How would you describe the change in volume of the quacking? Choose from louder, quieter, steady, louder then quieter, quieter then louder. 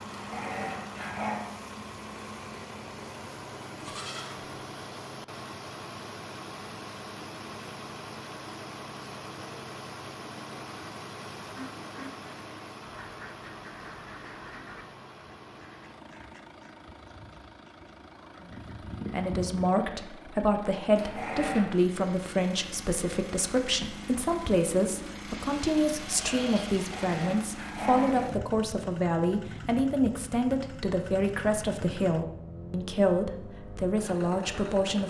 quieter then louder.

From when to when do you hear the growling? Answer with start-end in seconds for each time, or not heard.
0.1-1.4, 20.9-21.7, 26.7-28.3.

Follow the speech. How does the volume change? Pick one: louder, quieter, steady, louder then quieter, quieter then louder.
steady.